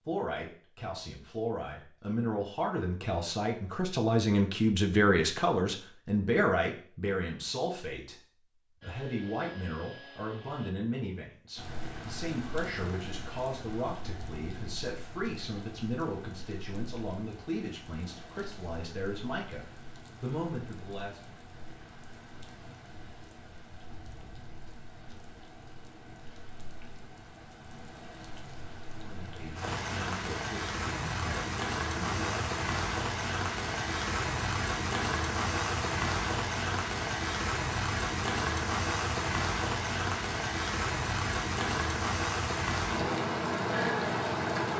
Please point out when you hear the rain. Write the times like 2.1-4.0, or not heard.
11.6-44.7.